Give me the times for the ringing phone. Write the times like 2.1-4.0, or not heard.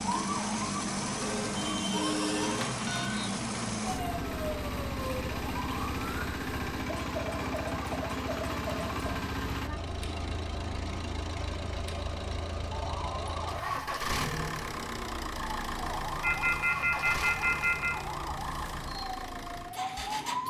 1.2-3.1, 16.2-17.9.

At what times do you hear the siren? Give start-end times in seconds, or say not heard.
0.0-20.4.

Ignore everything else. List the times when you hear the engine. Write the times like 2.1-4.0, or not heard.
0.0-20.4.